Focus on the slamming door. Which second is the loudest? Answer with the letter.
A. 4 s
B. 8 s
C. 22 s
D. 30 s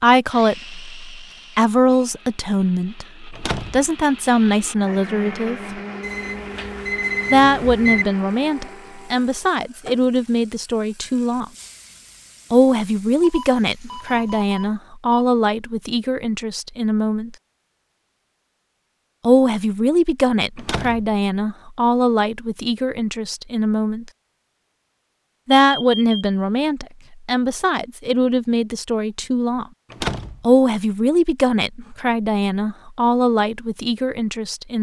D.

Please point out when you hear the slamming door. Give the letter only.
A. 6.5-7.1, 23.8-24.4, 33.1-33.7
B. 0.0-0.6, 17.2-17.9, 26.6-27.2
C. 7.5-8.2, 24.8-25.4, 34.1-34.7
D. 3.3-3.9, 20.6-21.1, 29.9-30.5
D.